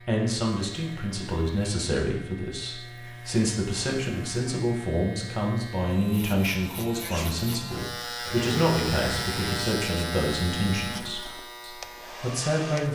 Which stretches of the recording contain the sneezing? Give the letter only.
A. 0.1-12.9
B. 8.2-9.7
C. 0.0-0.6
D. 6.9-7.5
D.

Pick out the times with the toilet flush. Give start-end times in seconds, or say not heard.
8.2-9.7.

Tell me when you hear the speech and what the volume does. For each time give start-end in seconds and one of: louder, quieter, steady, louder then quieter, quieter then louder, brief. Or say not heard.
0.1-12.9 steady.